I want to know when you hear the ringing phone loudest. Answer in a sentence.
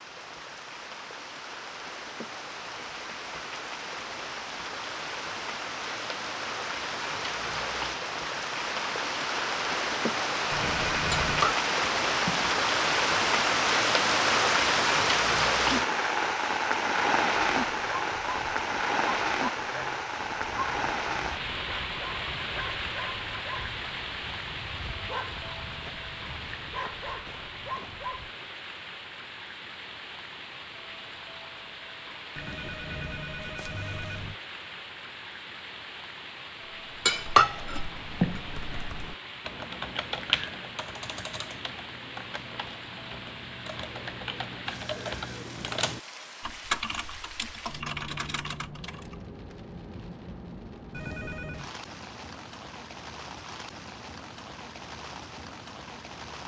The loudest moment of the ringing phone is at 11 seconds.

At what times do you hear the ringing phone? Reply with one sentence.
You can hear the ringing phone from 10.5 to 11.6 s, from 32.4 to 34.4 s and from 50.9 to 51.6 s.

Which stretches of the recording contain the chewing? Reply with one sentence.
You can't hear the chewing here.